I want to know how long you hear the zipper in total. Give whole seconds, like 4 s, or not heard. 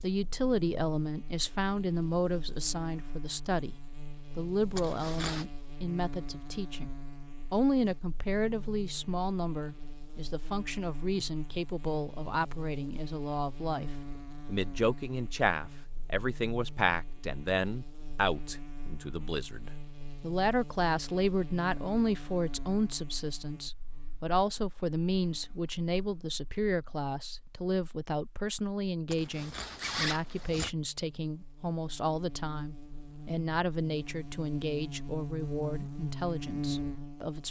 2 s.